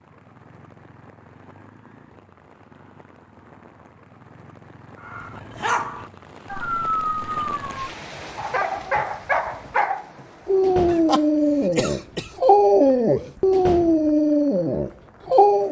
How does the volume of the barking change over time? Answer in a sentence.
The volume of the barking goes up.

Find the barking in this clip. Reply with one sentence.
The barking can be heard from 5.0 to 15.6 s.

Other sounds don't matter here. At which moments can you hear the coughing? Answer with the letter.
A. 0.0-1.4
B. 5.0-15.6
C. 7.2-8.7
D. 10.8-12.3
D.